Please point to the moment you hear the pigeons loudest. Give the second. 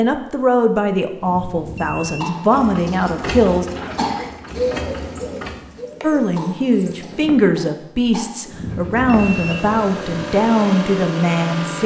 5 s.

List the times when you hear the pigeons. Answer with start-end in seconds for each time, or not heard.
3.7-7.0.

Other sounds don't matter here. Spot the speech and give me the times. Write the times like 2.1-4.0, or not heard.
0.0-3.6, 6.0-11.8.